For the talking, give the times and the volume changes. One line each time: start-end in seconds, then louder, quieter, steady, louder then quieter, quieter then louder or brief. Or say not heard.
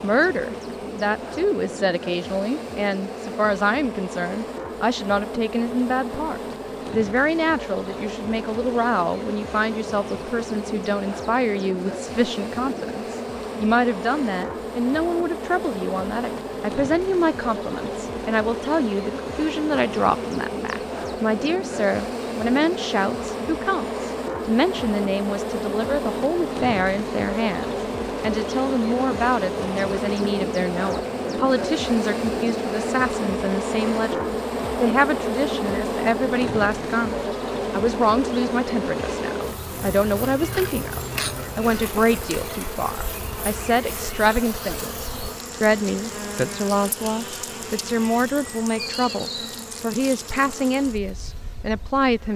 0.0-52.3 steady.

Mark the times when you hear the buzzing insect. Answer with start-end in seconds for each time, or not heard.
0.0-52.3.